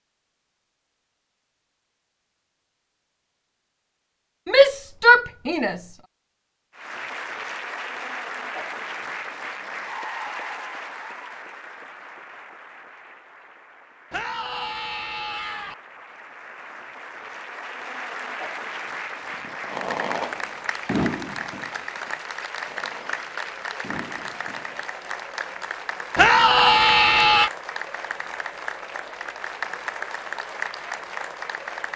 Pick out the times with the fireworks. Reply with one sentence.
The fireworks can be heard from 19.4 to 24.8 s.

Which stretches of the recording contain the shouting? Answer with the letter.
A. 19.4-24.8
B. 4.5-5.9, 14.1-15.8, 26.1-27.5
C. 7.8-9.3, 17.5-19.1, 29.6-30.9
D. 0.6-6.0
B.